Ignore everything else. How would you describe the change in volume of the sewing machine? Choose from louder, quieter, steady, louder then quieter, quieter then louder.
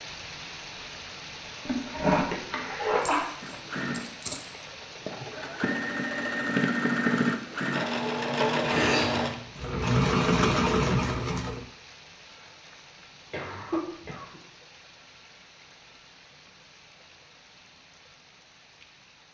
louder.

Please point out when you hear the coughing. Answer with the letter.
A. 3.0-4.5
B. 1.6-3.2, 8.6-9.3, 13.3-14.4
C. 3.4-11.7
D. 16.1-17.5
B.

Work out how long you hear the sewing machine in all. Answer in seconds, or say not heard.
8 s.